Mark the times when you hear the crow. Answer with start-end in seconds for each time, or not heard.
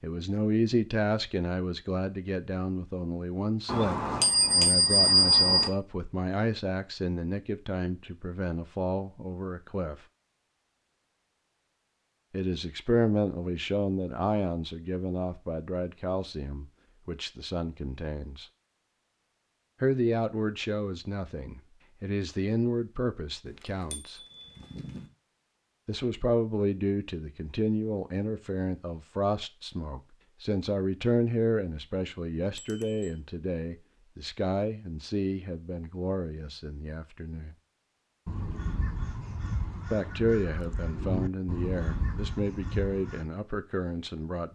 38.2-43.2.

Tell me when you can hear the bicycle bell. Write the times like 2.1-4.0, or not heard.
3.6-5.7, 23.4-25.1, 32.5-33.1.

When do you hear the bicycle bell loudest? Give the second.
5 s.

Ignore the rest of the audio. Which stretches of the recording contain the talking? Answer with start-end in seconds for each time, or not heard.
0.0-9.9, 12.3-18.4, 19.8-24.2, 25.9-37.5, 39.9-44.5.